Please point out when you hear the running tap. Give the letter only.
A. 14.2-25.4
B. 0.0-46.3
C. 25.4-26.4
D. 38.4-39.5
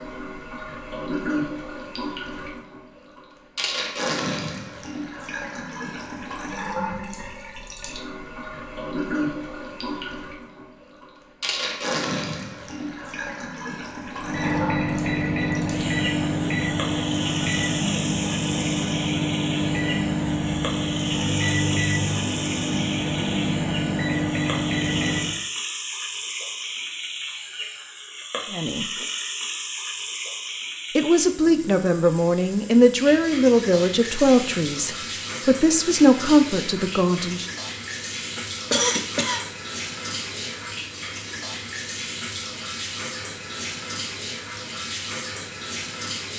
B.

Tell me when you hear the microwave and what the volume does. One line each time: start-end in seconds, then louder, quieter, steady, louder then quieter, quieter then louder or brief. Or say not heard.
14.2-25.4 steady.